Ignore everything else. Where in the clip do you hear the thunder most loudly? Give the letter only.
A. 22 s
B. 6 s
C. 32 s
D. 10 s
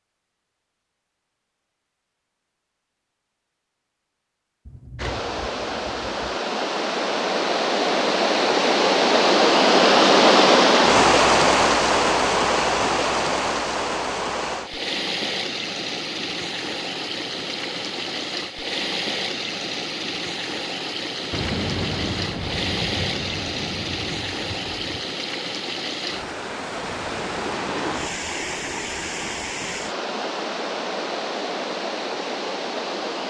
A.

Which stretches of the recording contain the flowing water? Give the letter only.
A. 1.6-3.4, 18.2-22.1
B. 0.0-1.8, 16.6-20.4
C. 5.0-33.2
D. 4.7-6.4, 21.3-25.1
C.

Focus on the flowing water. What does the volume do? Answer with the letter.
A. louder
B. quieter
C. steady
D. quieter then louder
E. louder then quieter
B.